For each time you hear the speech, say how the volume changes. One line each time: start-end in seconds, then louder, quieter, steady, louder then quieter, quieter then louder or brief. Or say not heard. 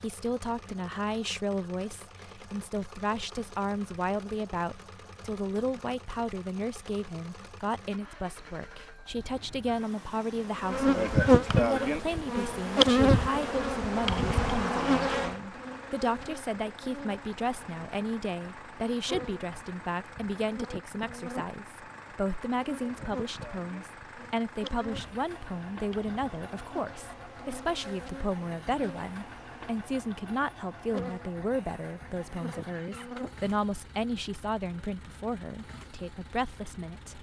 0.0-37.1 steady.